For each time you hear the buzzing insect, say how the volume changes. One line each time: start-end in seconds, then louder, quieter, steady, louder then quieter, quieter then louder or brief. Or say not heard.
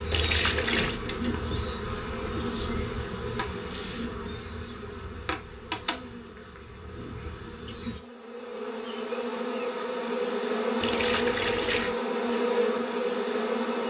0.0-13.8 quieter then louder.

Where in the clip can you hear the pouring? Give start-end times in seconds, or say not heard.
0.1-1.0, 10.8-12.1.